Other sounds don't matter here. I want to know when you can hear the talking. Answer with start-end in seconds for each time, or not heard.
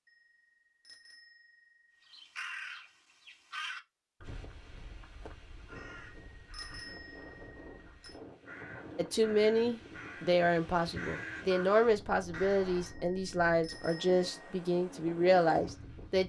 8.9-16.2.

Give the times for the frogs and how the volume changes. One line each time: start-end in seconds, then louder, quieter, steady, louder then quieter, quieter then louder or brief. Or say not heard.
not heard.